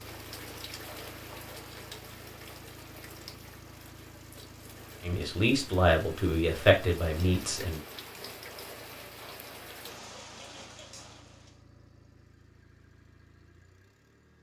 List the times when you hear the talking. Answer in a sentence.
The talking can be heard from 5.0 to 7.8 s.